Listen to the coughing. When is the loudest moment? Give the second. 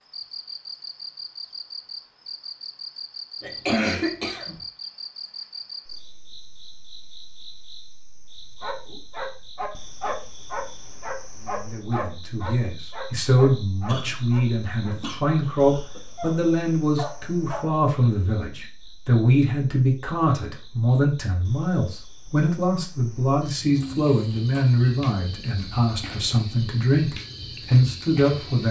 4 s.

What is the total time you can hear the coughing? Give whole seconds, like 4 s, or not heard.
4 s.